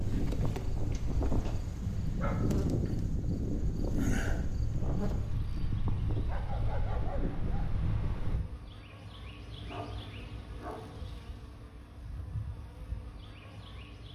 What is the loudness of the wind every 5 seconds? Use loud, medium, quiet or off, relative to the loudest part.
loud, loud, off.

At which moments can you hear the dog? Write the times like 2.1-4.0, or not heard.
0.9-2.4, 6.2-7.7, 9.7-11.2.